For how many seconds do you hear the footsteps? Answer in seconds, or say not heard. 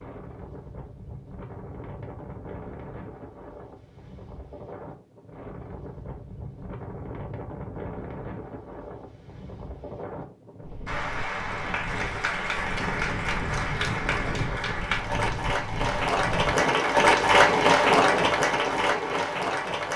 not heard.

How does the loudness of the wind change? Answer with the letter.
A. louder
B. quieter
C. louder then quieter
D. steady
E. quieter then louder
A.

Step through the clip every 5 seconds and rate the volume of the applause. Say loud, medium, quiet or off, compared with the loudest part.
off, off, medium, loud.